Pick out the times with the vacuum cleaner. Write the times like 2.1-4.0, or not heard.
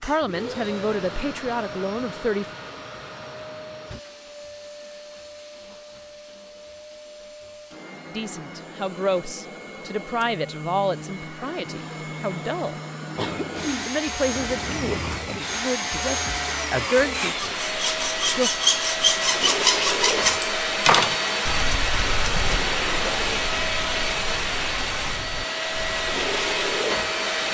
0.0-27.4.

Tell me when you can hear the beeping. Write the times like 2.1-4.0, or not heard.
not heard.